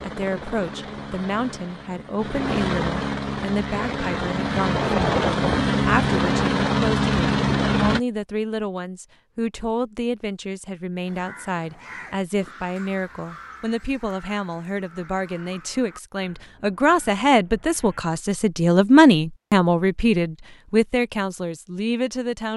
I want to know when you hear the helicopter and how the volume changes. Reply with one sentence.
You can hear the helicopter from 0.0 to 8.0 s, getting louder.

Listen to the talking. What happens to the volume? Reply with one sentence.
The loudness of the talking goes up.